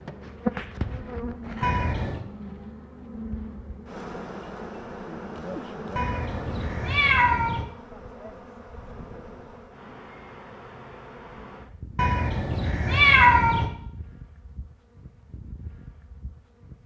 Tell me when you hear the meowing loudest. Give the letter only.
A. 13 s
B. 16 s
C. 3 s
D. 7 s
A.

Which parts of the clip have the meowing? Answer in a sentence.
The meowing can be heard from 1.6 to 2.2 s, from 6.0 to 7.7 s and from 11.9 to 13.7 s.